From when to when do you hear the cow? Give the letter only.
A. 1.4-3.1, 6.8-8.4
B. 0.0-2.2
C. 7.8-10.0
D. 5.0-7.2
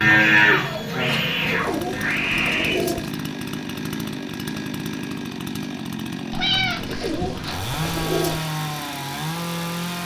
B.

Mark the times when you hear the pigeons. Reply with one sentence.
The pigeons can be heard from 1.4 to 3.1 s and from 6.8 to 8.4 s.